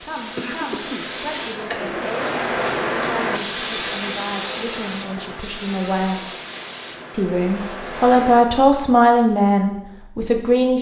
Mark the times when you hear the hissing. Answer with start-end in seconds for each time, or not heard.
0.0-8.6.